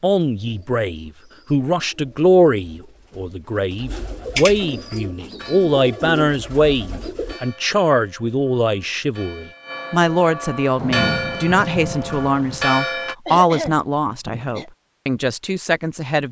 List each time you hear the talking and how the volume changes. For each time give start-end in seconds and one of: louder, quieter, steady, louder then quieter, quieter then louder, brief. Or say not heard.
0.0-16.2 steady.